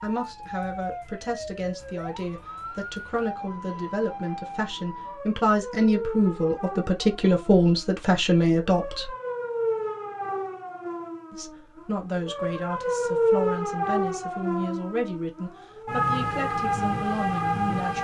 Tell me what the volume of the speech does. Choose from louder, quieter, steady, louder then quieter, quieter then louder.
louder then quieter.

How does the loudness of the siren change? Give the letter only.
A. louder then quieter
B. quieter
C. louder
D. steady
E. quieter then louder
C.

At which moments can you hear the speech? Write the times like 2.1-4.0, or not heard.
0.0-9.1, 11.3-17.9.